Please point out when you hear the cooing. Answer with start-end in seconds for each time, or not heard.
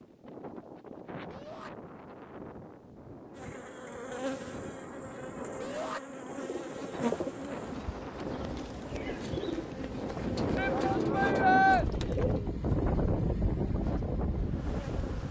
6.3-12.6.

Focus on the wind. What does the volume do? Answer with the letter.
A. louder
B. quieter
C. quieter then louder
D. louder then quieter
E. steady
A.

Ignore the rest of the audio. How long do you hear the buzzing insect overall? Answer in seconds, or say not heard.
9 s.